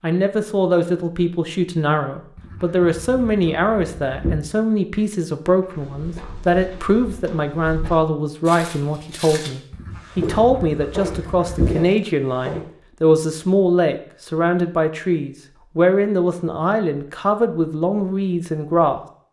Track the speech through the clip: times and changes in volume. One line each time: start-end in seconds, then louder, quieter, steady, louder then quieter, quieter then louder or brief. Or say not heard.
0.0-19.0 steady.